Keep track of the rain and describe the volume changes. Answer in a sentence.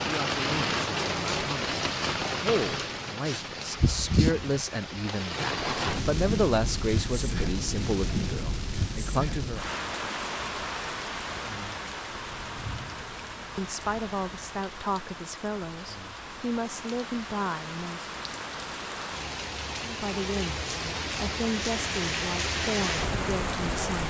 The volume of the rain goes down, then up.